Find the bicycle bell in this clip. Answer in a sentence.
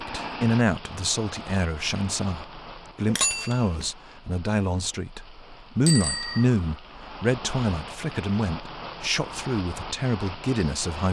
You can hear the bicycle bell from 3.0 to 3.9 s and from 5.8 to 6.5 s.